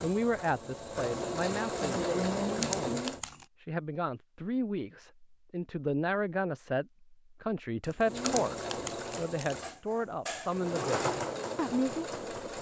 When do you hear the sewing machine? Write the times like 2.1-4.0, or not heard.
0.0-3.2, 8.0-12.5.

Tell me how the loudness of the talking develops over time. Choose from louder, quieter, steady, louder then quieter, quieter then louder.
steady.